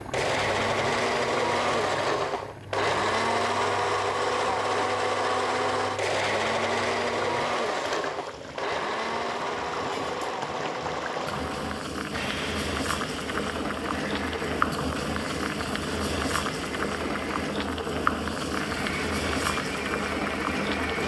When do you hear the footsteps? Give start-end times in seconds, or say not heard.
not heard.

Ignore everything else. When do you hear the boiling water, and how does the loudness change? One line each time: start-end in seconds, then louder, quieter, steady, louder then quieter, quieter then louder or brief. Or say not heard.
0.0-21.0 louder.